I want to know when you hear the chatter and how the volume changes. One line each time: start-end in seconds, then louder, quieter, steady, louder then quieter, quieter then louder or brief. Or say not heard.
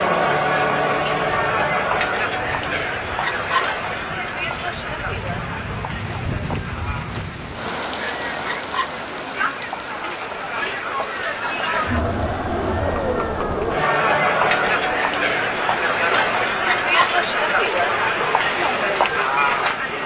0.0-20.0 quieter then louder.